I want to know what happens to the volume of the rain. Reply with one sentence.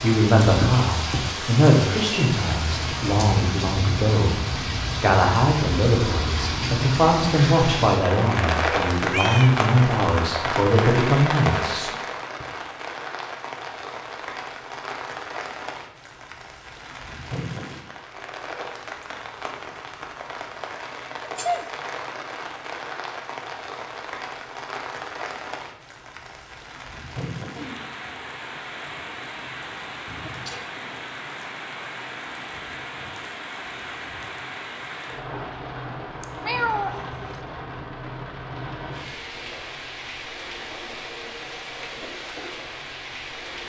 The volume of the rain goes down.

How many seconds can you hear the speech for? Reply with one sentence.
The speech can be heard for 11 seconds in total.